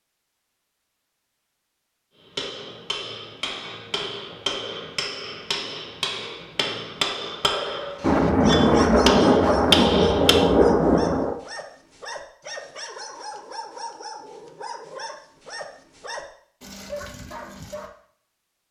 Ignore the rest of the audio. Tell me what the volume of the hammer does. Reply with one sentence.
The loudness of the hammer goes up.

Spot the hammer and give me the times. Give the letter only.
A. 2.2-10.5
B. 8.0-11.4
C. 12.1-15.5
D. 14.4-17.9
A.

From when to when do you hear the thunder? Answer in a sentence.
The thunder can be heard from 8.0 to 11.4 s.